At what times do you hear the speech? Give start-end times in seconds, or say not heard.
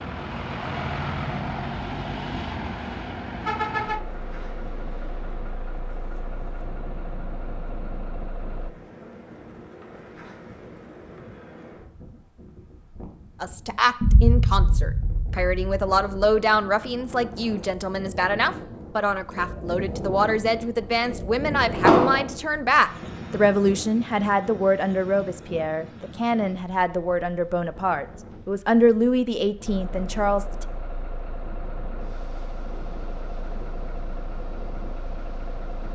13.4-30.6.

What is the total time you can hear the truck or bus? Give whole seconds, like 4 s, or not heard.
15 s.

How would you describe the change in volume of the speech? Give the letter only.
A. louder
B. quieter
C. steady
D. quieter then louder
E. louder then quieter
C.